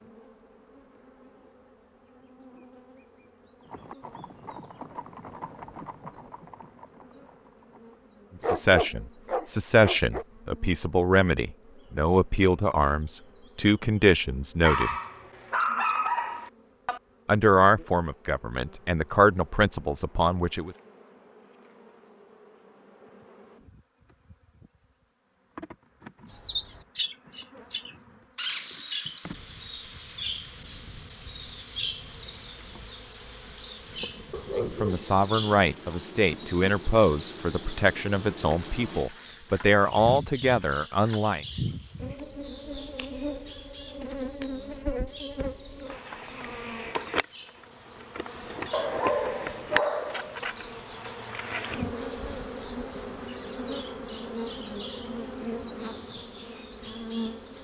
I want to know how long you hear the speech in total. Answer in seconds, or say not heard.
17 s.